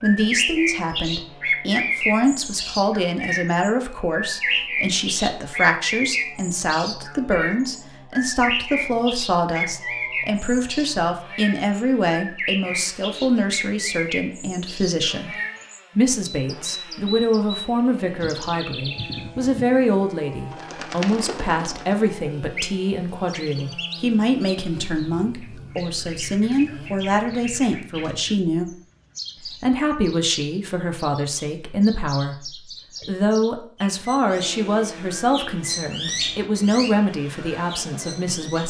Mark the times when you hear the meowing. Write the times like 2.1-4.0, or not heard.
not heard.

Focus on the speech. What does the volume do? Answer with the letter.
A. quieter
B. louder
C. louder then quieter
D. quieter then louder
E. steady
E.